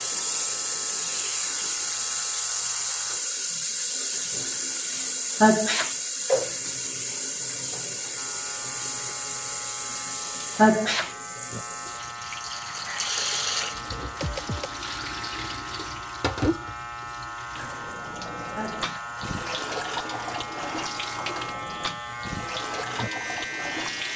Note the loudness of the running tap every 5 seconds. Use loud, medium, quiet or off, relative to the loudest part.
loud, loud, medium, medium, medium.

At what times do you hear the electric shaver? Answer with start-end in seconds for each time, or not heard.
0.0-3.2, 8.2-24.1.